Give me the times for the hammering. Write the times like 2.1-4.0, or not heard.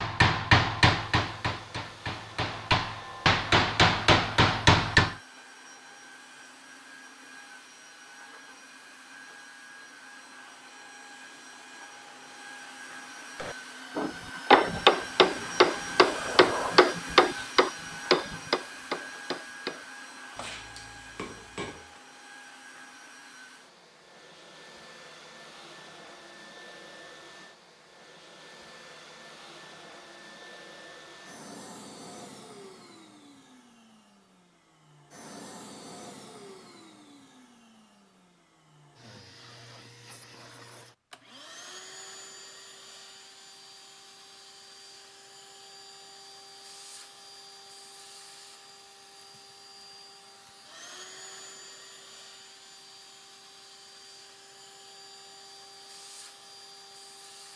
0.0-5.2, 13.4-22.0.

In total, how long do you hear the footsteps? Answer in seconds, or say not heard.
not heard.